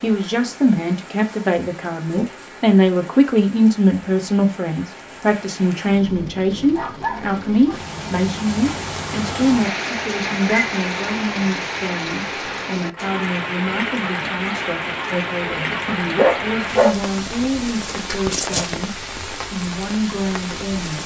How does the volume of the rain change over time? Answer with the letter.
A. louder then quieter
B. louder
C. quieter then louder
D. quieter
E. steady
B.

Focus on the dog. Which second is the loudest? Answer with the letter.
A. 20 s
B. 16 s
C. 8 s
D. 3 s
B.